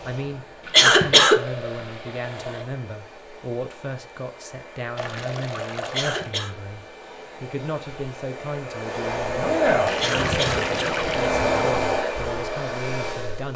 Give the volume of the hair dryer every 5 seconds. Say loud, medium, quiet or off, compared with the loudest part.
quiet, loud, loud.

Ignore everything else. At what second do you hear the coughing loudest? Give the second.
1 s.